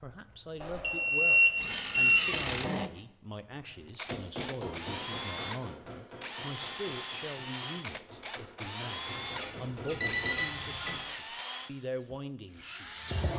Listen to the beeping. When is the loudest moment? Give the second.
1 s.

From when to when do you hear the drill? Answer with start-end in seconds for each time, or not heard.
0.1-13.3.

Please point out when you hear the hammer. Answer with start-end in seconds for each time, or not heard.
3.6-10.4.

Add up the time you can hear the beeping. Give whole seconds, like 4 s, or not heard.
4 s.